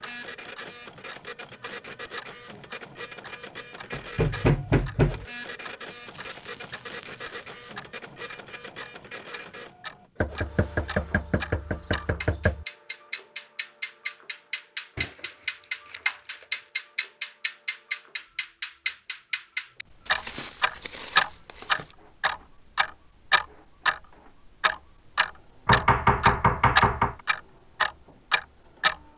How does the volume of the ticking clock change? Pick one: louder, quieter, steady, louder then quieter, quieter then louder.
louder.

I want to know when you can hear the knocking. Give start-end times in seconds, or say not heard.
3.9-5.2, 10.2-12.7, 25.6-27.1.